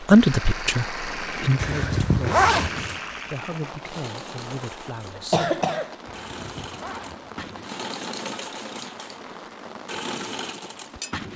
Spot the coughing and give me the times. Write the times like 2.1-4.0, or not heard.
5.1-6.0.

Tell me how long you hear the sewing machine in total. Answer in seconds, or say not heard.
11 s.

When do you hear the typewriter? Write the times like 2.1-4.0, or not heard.
not heard.